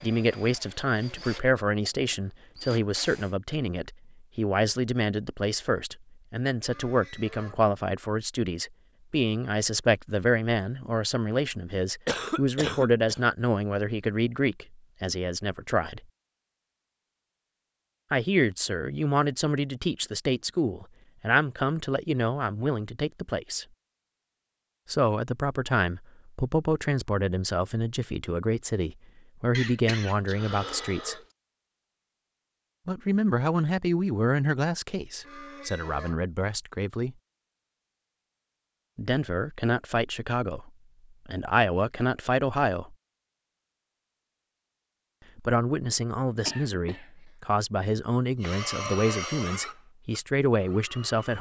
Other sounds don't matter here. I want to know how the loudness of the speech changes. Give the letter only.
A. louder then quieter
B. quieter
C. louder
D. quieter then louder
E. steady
E.